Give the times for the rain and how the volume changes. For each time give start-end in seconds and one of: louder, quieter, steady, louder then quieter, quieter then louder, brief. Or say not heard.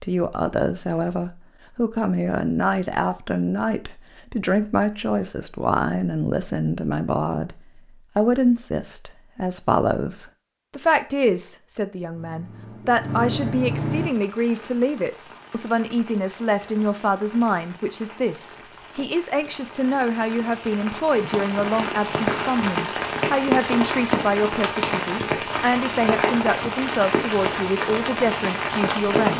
13.9-29.3 louder.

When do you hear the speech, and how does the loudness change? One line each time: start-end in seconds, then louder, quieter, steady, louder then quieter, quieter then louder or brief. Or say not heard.
0.0-29.3 steady.